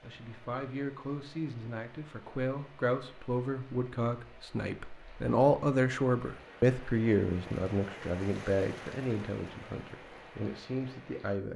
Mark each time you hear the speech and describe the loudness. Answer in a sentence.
You can hear the speech from 0.0 to 11.5 s, getting louder then quieter.